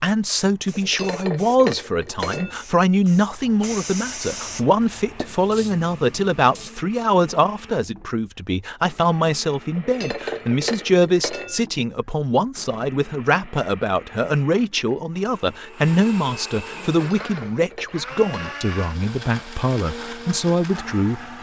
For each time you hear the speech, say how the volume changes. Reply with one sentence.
The speech can be heard from 0.0 to 21.3 s, at a steady volume.